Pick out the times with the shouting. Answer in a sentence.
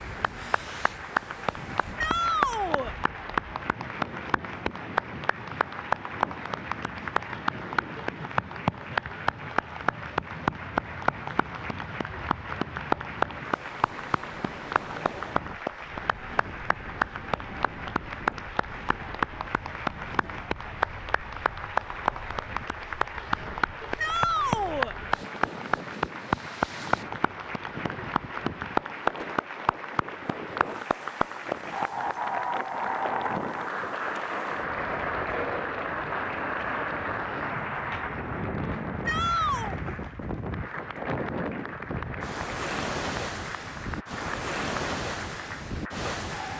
The shouting can be heard from 1.9 to 3.0 s, from 23.9 to 24.9 s and from 39.0 to 39.8 s.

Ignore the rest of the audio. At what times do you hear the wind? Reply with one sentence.
The wind can be heard from 0.0 to 46.5 s.